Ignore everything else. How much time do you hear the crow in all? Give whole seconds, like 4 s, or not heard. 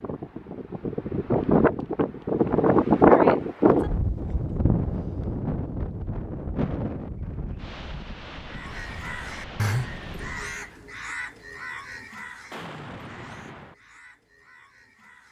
7 s.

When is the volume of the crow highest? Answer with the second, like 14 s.
10 s.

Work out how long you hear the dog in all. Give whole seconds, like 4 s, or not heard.
not heard.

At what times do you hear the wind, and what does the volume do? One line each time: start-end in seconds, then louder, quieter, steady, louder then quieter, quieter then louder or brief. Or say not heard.
0.0-10.8 louder then quieter.